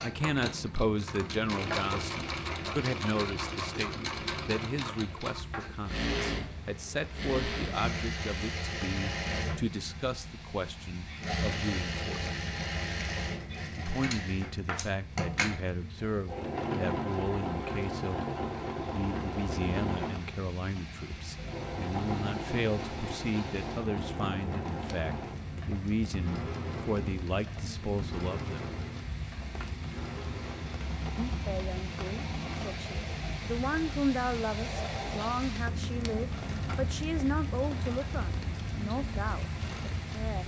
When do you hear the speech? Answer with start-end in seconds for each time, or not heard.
0.0-12.3, 13.8-28.6, 31.1-40.4.